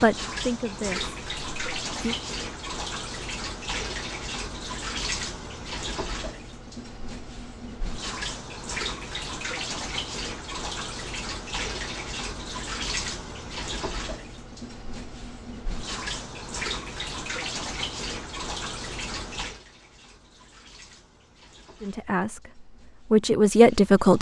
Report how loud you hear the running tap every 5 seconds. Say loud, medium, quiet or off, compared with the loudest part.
loud, loud, loud, loud, quiet.